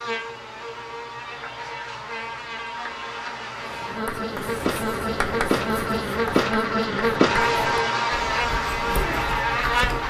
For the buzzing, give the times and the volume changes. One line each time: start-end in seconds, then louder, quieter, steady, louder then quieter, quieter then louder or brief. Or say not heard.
0.0-10.0 louder.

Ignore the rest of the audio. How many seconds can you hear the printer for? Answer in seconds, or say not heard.
not heard.